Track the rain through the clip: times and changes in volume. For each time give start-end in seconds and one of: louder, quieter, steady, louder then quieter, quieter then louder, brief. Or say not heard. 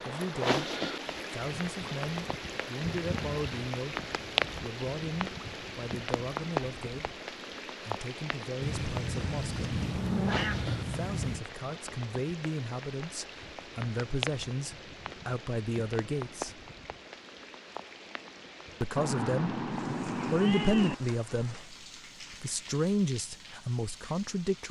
0.0-24.6 quieter.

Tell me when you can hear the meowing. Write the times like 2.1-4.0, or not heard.
2.8-3.5, 8.6-11.4, 18.9-20.9.